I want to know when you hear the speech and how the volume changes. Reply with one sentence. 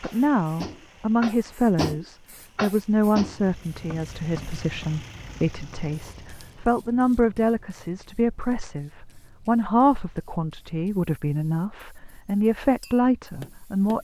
The speech can be heard from 0.0 to 13.9 s, at a steady volume.